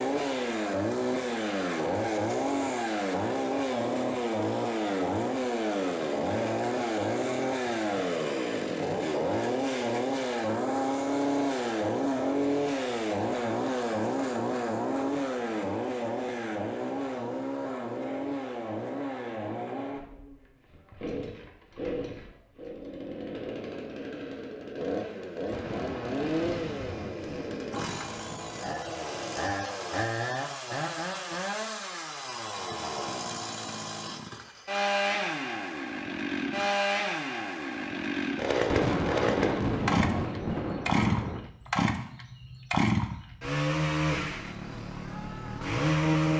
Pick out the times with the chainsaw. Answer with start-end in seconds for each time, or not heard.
0.0-46.3.